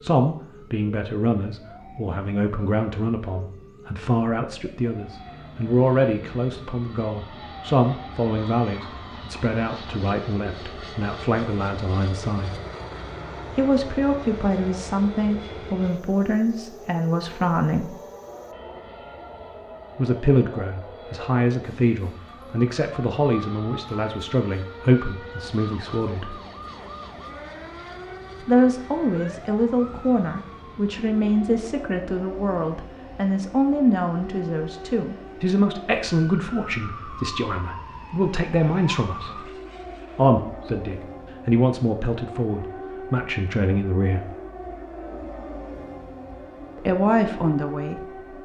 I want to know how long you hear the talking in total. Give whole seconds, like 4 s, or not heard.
40 s.